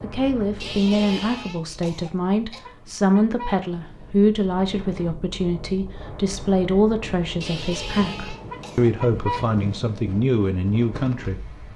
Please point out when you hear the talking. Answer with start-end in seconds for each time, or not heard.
0.0-11.7.